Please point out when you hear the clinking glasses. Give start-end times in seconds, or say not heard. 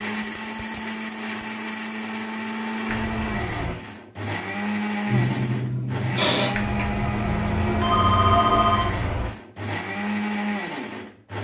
not heard.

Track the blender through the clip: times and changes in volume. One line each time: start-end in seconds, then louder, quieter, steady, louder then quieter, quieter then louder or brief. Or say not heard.
0.0-11.3 steady.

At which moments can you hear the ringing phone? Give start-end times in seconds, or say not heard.
2.9-3.8, 6.5-9.3.